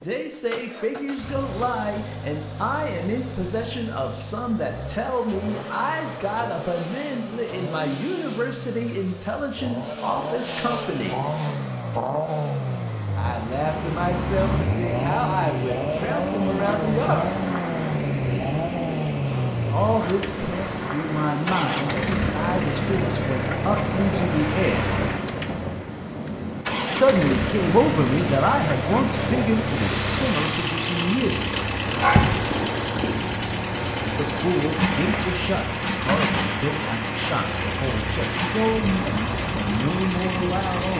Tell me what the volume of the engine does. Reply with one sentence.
The loudness of the engine goes up.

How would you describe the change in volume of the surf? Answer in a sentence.
The loudness of the surf stays about the same.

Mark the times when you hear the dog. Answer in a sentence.
You can hear the dog from 31.9 to 33.4 s.